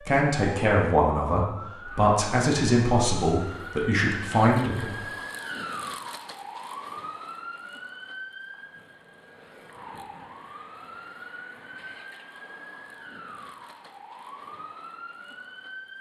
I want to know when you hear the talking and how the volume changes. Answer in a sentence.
You can hear the talking from 0.0 to 5.0 s, at a steady volume.